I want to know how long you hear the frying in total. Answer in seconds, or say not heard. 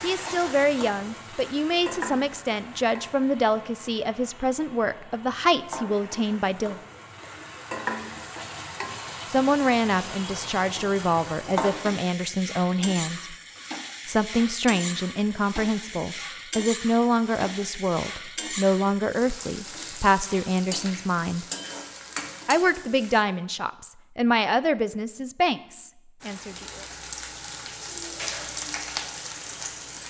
27 s.